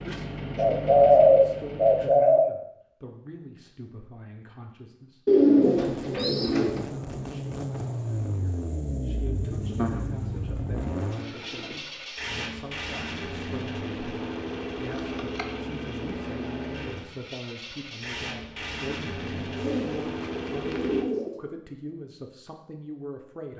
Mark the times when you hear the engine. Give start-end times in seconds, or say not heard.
0.0-2.1, 5.6-21.1.